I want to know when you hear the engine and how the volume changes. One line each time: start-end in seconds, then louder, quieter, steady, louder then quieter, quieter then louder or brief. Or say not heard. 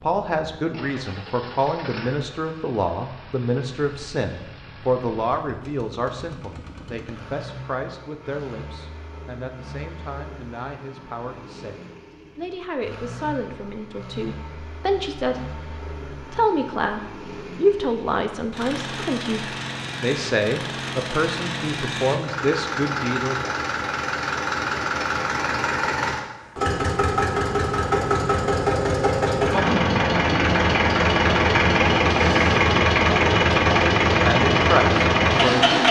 0.0-35.8 louder.